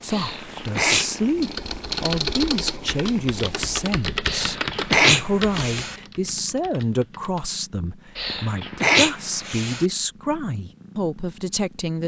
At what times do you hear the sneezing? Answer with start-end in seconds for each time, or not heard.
0.1-1.2, 4.2-6.0, 8.2-9.8.